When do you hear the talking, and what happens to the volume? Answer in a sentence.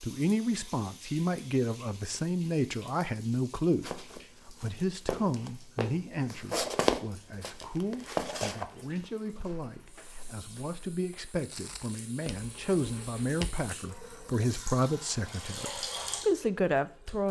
The talking can be heard from 0.0 to 17.2 s, getting quieter then louder.